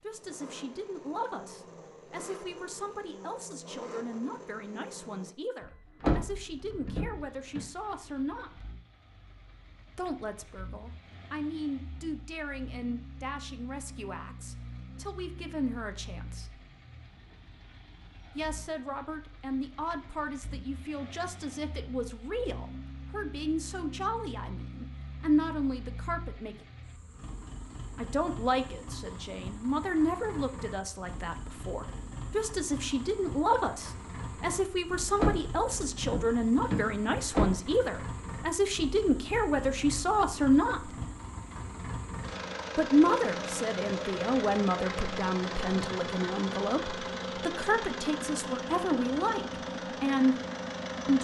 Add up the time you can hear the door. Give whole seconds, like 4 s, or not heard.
4 s.